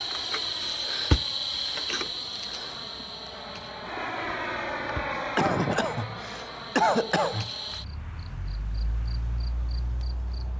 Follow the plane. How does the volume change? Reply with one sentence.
The loudness of the plane goes up, then down.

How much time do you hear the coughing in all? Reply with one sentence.
You can hear the coughing for 2 seconds altogether.